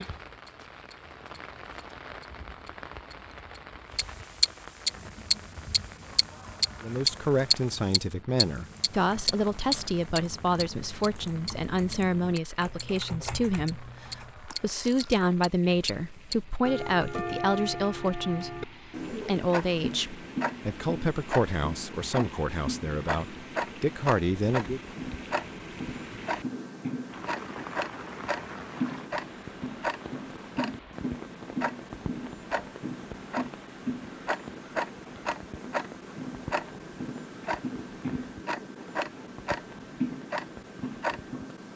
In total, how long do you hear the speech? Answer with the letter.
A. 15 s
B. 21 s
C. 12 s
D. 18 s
D.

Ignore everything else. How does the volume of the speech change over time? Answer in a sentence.
The loudness of the speech stays about the same.